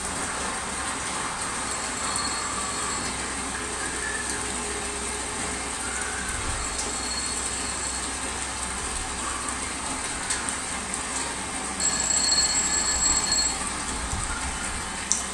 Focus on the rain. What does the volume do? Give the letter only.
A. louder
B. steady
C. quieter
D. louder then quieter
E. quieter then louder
B.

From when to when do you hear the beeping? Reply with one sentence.
The beeping can be heard from 1.7 to 3.0 s, from 6.8 to 8.1 s and from 11.8 to 13.6 s.